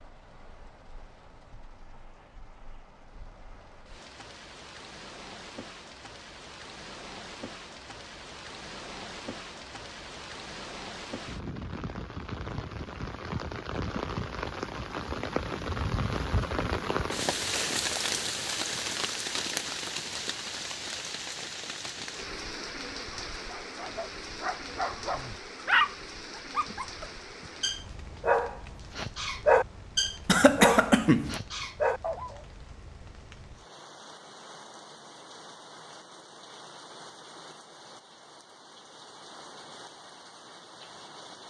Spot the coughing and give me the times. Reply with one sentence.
You can hear the coughing from 30.2 to 31.4 s.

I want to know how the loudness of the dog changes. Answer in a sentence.
The volume of the dog goes up.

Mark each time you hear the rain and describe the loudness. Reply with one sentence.
You can hear the rain from 0.0 to 41.4 s, getting louder then quieter.